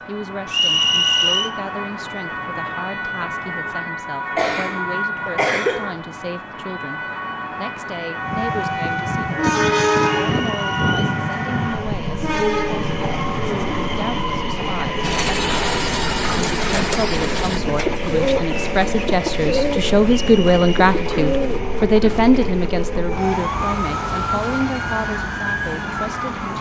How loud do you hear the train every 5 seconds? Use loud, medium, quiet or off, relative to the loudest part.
off, loud, loud, medium, medium, quiet.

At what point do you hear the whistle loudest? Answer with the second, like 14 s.
1 s.